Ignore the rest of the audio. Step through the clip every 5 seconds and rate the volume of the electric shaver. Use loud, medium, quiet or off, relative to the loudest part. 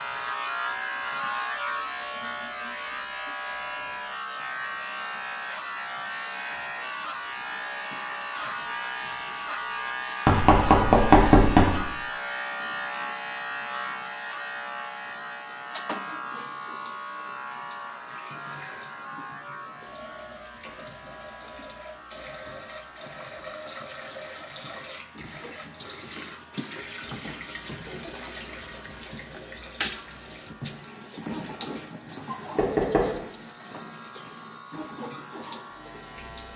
loud, loud, loud, medium, quiet, quiet, quiet, quiet.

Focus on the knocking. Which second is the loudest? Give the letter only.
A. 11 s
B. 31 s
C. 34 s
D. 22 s
A.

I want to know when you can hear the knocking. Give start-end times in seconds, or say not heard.
10.2-11.8, 32.5-33.1.